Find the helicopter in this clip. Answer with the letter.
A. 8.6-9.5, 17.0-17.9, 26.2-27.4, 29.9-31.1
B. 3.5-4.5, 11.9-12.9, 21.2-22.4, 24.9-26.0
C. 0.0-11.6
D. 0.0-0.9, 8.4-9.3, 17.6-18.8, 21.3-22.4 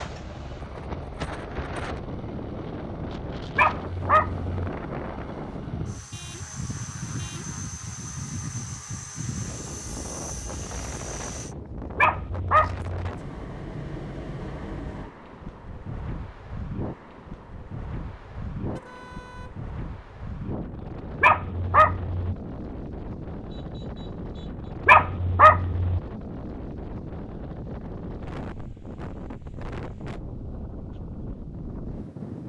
C.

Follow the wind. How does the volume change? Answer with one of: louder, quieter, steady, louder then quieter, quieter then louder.
steady.